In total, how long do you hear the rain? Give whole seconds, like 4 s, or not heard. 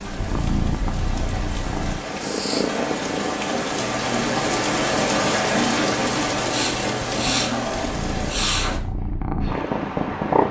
9 s.